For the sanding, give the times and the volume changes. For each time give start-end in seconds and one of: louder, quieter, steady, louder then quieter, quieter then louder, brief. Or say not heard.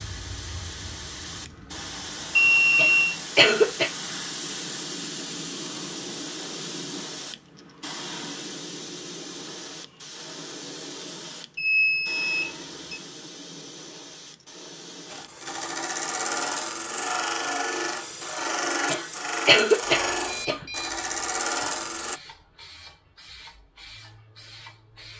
15.1-22.2 steady.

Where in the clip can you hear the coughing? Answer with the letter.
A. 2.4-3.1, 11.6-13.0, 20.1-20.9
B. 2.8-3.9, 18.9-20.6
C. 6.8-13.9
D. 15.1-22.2
B.